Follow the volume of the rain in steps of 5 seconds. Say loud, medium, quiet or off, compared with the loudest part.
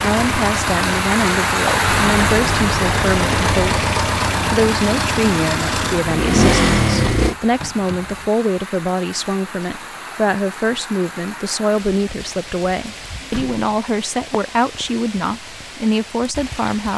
loud, medium, quiet, quiet.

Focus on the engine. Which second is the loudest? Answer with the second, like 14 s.
7 s.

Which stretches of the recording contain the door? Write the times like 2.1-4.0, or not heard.
1.8-3.6, 7.0-8.3, 13.1-13.8.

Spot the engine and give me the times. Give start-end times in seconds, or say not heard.
0.0-7.3.